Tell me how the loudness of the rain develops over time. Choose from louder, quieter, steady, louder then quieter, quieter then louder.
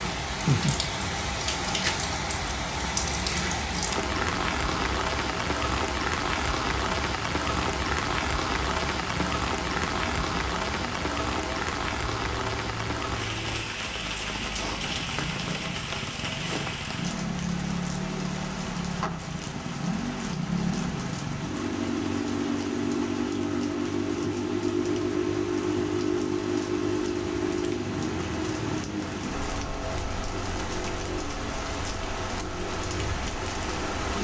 quieter.